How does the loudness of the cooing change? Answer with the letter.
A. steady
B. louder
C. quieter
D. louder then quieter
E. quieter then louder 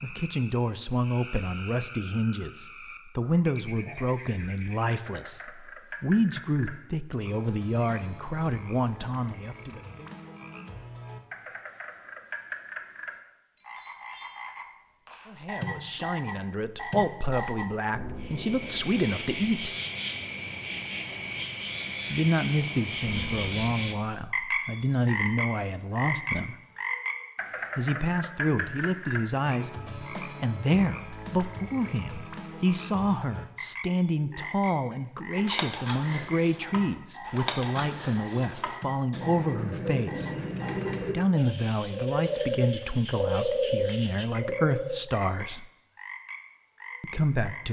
B.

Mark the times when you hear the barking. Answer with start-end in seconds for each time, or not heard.
not heard.